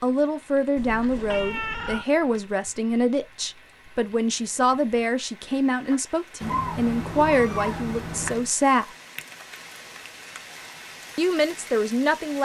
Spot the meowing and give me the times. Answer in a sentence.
You can hear the meowing from 0.8 to 2.0 s and from 6.4 to 8.5 s.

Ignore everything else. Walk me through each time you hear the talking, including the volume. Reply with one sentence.
You can hear the talking from 0.0 to 8.9 s, at a steady volume; and briefly from 11.2 to 12.4 s.